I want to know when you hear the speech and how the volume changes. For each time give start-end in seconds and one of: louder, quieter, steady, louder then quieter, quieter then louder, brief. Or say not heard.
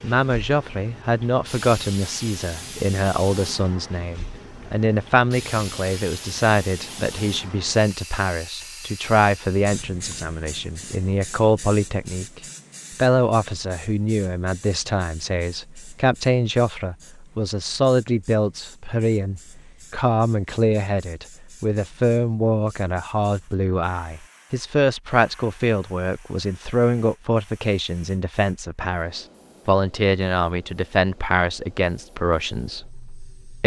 0.0-33.6 steady.